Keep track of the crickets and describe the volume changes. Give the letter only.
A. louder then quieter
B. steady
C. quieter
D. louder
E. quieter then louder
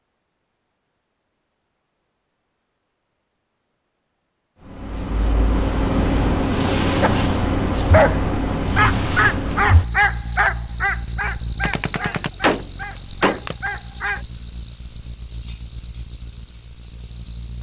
C.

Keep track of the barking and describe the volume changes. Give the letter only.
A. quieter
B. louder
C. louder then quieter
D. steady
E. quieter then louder
A.